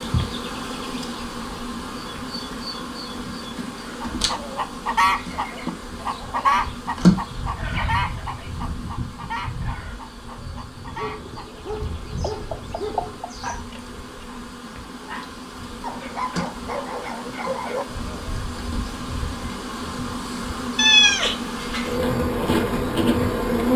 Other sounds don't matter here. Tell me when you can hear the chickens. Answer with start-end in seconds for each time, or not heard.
3.9-13.5.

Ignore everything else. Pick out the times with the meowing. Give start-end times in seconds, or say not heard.
20.8-21.9.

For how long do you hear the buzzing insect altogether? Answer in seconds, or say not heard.
24 s.